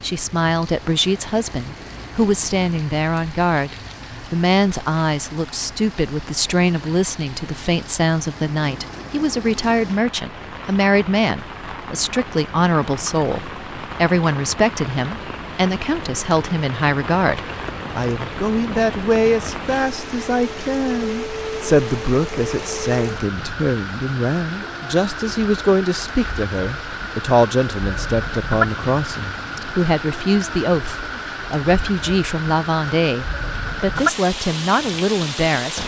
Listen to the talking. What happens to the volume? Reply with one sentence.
The volume of the talking stays about the same.